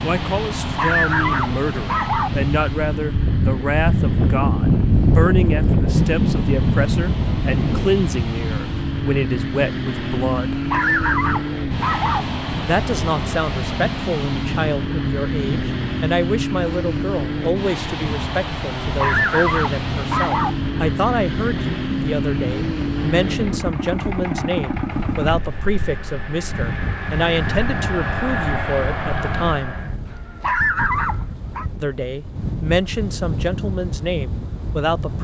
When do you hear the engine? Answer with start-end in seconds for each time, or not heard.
0.0-30.0.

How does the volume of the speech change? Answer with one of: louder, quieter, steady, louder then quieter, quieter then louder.
steady.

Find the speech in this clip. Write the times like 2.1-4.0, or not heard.
0.0-10.6, 12.6-29.8, 31.8-35.1.